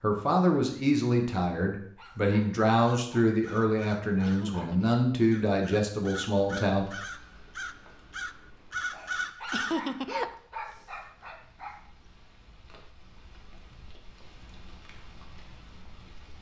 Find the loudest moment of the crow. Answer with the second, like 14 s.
10 s.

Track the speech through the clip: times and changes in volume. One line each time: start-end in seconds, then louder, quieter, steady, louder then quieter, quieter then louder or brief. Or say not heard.
0.0-6.8 steady.